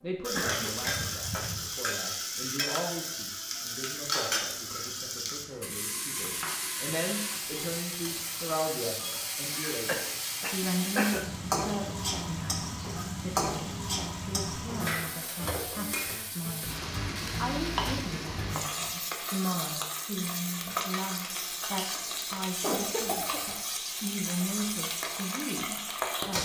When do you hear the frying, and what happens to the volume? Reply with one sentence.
You can hear the frying from 0.1 to 26.3 s, at a steady volume.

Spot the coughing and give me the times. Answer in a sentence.
The coughing can be heard from 0.3 to 1.6 s, from 9.8 to 11.2 s and from 22.6 to 23.4 s.